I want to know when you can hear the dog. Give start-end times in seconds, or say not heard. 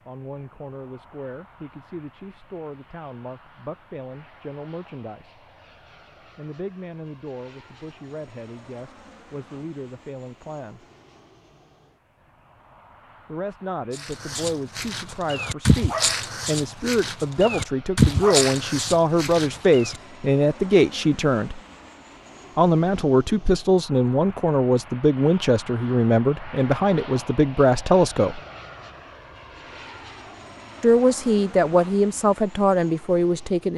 13.9-20.0.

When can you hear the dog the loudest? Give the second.
18 s.